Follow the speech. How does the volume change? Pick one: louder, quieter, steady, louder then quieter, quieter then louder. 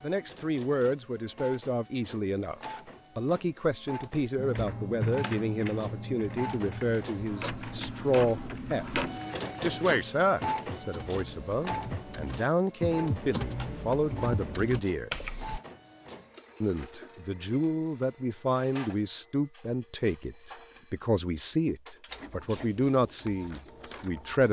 steady.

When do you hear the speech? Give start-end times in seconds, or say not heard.
0.0-8.8, 9.6-15.1, 16.6-24.4.